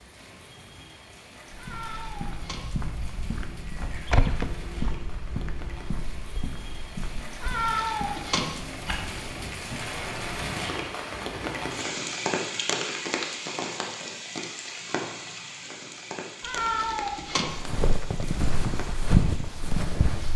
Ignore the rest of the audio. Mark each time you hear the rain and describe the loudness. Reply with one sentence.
The rain can be heard from 0.0 to 20.3 s, getting louder then quieter.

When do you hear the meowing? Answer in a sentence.
The meowing can be heard from 1.6 to 2.7 s, from 7.4 to 8.5 s and from 16.4 to 17.6 s.